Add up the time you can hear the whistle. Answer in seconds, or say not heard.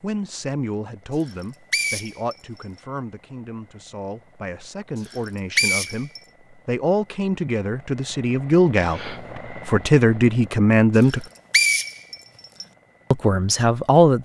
4 s.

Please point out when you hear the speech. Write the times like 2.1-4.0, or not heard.
0.0-11.2, 13.1-14.1.